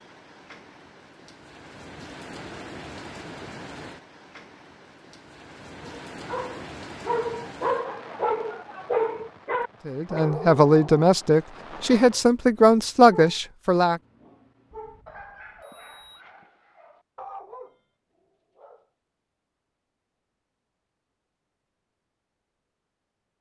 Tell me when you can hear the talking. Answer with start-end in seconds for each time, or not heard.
9.8-14.0.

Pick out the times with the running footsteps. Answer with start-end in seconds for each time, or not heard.
not heard.